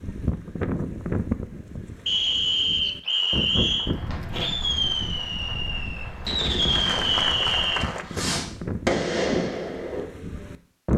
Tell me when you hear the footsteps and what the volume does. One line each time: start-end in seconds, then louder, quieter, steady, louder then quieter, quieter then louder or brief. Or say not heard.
not heard.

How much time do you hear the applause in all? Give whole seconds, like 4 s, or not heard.
5 s.